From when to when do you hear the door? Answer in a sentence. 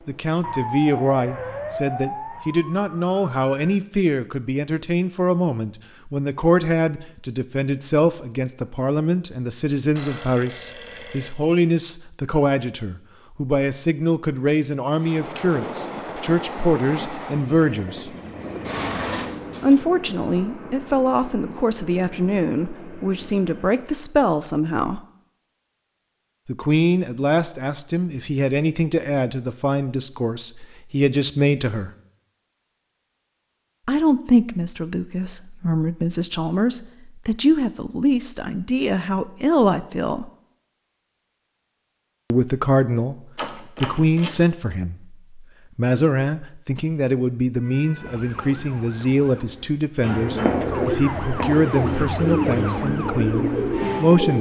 You can hear the door from 18.6 to 19.8 s and from 43.4 to 44.5 s.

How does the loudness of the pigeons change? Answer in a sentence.
The loudness of the pigeons goes up.